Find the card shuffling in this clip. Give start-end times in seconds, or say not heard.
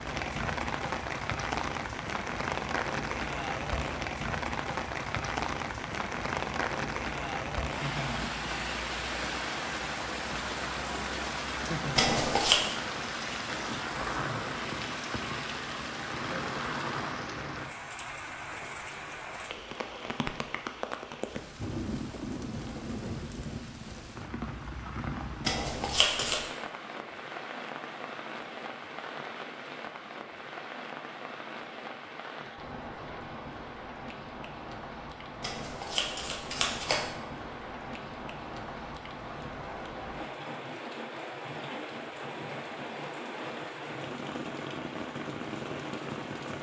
11.9-12.6, 25.4-26.4, 35.4-37.0.